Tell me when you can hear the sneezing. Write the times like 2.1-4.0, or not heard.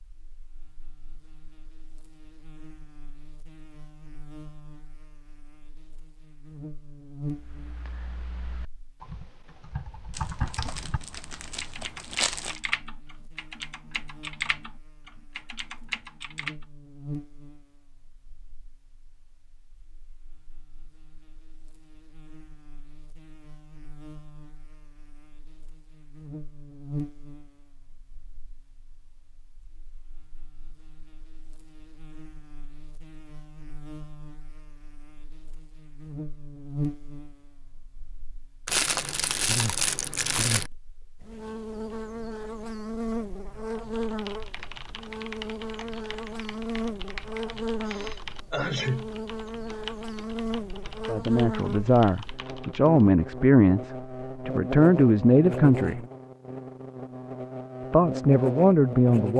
47.9-49.1.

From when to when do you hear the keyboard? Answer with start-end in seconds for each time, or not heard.
7.3-16.6, 43.7-53.0.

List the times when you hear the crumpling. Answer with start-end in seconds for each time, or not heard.
10.1-12.6, 38.6-40.7.